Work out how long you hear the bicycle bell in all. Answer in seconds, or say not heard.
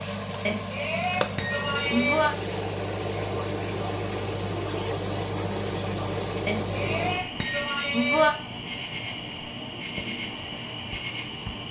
4 s.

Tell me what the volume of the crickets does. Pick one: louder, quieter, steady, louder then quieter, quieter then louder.
quieter.